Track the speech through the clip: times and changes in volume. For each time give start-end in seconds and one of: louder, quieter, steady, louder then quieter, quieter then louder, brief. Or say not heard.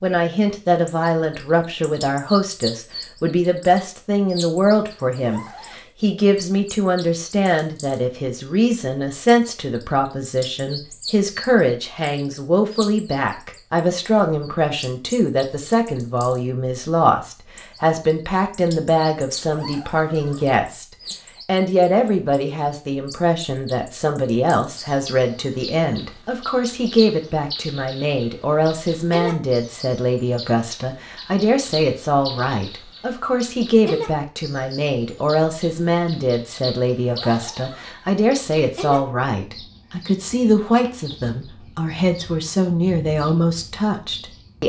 0.0-20.9 steady
21.4-44.6 steady.